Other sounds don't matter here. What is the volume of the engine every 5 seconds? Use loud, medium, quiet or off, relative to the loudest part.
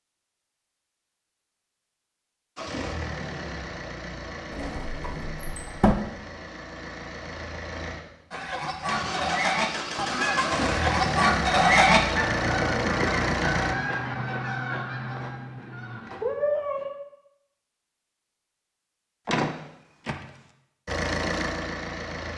medium, medium, loud, off, loud.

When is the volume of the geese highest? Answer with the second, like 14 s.
12 s.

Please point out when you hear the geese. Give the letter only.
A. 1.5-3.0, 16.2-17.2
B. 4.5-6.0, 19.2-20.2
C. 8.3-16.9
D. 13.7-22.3
C.